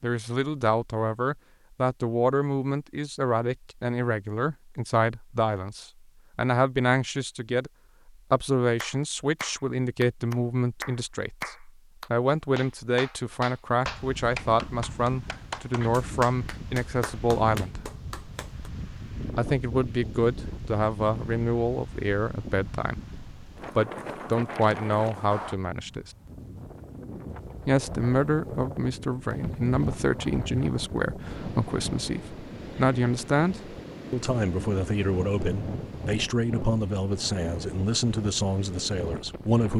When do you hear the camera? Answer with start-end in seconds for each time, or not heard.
not heard.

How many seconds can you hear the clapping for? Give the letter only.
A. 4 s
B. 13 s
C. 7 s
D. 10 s
D.